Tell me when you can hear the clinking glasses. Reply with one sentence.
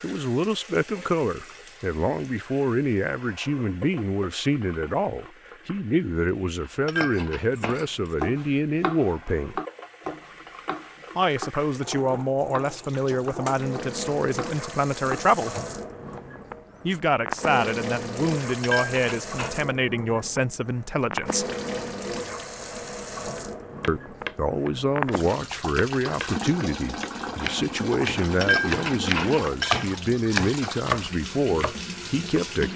The clinking glasses can be heard from 6.6 to 7.8 s, from 18.4 to 19.6 s and from 28.4 to 29.9 s.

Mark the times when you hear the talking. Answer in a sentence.
You can hear the talking from 0.0 to 9.6 s, from 11.2 to 15.6 s, from 16.9 to 21.4 s and from 23.9 to 32.7 s.